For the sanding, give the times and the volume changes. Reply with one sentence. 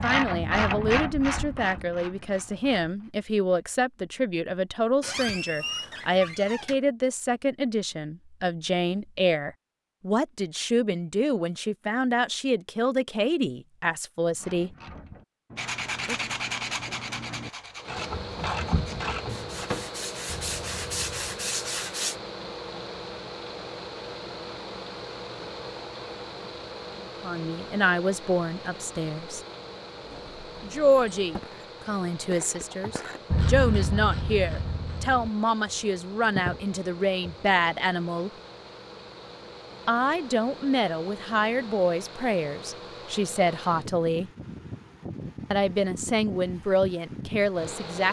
The sanding can be heard from 15.6 to 22.1 s, getting quieter then louder.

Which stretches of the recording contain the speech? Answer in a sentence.
The speech can be heard from 0.0 to 14.8 s, from 27.2 to 29.4 s, from 30.6 to 38.3 s, from 39.9 to 44.3 s and from 45.5 to 48.0 s.